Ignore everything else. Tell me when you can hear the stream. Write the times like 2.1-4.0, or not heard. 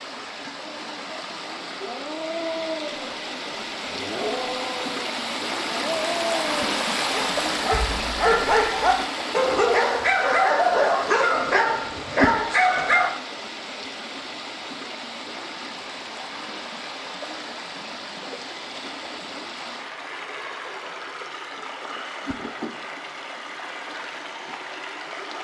0.0-25.4.